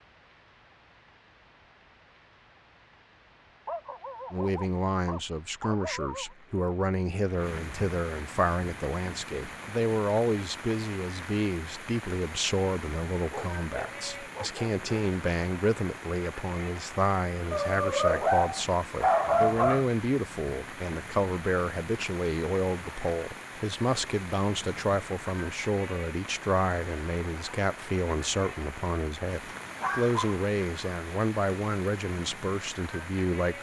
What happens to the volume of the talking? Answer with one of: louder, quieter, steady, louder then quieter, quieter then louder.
steady.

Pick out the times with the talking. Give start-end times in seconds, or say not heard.
4.3-33.5.